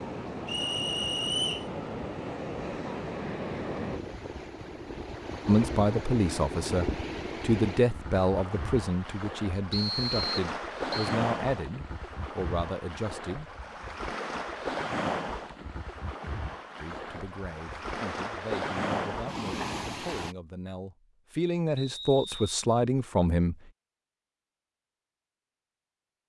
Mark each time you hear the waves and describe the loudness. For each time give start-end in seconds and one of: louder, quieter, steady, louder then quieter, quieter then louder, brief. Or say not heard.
0.0-20.4 steady.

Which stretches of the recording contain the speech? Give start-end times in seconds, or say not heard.
5.5-13.4, 16.8-23.6.